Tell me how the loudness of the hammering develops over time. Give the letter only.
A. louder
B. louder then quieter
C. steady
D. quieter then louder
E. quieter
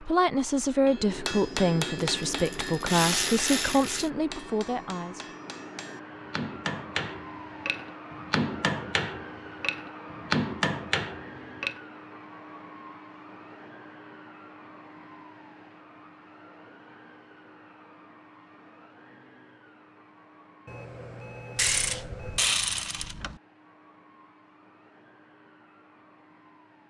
D.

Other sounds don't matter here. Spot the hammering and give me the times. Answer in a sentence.
The hammering can be heard from 0.8 to 11.8 s.